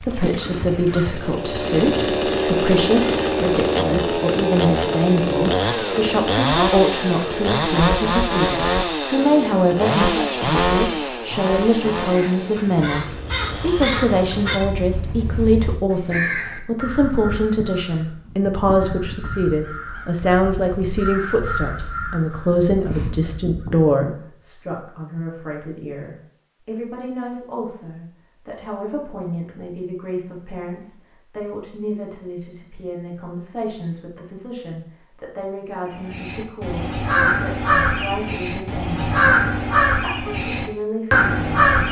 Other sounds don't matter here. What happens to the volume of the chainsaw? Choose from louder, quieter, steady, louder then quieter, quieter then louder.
quieter.